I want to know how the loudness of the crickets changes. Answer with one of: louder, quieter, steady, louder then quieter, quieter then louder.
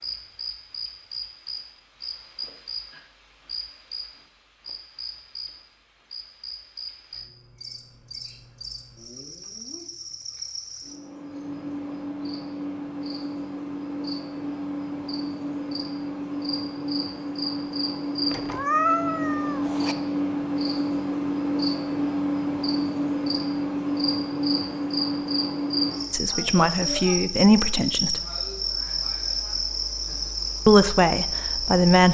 louder.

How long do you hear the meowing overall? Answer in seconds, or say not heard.
2 s.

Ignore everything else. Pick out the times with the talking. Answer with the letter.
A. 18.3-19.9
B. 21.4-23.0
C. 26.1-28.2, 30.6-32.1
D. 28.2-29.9
C.